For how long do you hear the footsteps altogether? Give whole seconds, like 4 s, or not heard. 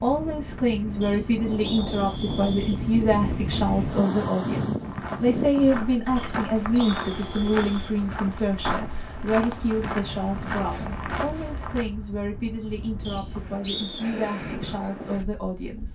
7 s.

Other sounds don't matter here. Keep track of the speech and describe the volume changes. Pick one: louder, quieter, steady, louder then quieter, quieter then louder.
quieter.